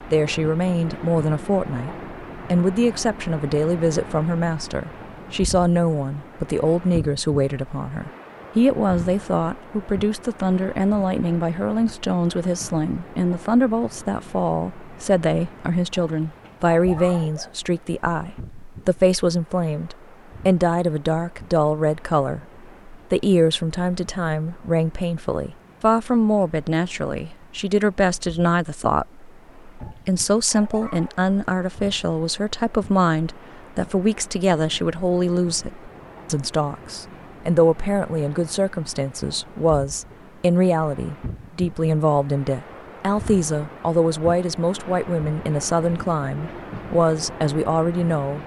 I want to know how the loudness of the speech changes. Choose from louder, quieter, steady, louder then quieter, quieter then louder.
steady.